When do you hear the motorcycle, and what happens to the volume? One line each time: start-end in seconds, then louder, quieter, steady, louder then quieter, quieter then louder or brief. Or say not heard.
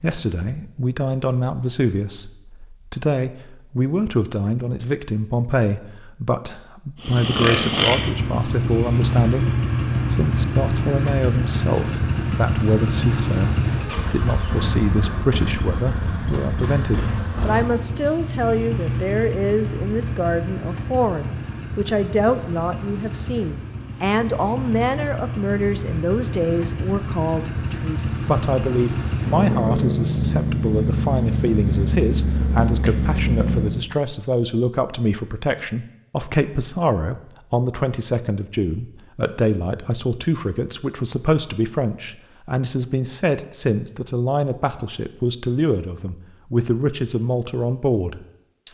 7.0-33.9 quieter then louder.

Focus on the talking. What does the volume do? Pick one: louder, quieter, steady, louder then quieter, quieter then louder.
steady.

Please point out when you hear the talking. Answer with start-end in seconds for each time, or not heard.
0.0-48.6.